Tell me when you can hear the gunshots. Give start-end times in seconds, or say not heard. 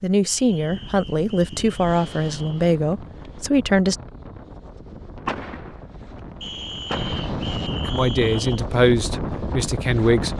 5.2-6.2, 6.8-7.3.